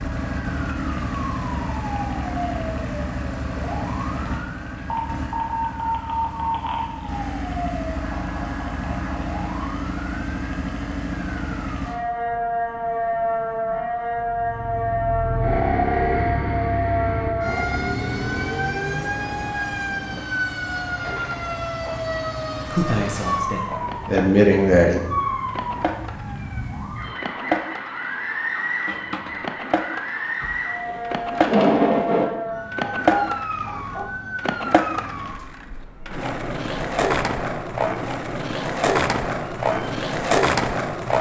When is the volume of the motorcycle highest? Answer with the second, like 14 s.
16 s.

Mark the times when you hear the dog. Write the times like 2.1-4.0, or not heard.
32.8-34.1.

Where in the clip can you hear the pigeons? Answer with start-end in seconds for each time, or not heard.
not heard.